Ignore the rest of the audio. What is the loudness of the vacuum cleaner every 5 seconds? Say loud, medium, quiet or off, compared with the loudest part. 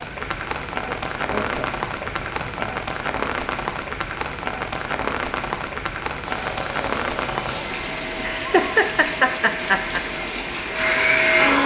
off, quiet, loud.